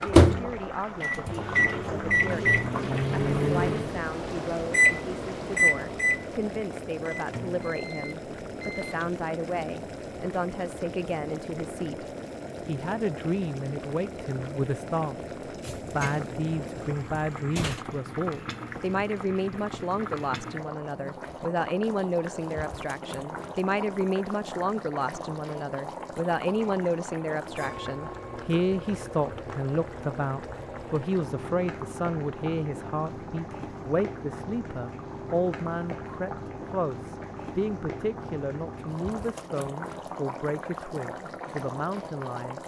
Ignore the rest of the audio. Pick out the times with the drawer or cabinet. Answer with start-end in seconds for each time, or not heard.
15.6-17.9.